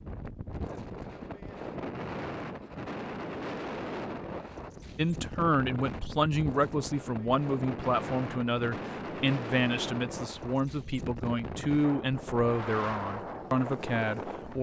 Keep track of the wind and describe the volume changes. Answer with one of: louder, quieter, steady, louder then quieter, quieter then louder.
steady.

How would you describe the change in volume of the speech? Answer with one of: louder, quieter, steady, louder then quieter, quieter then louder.
steady.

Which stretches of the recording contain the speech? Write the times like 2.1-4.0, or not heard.
5.0-14.5.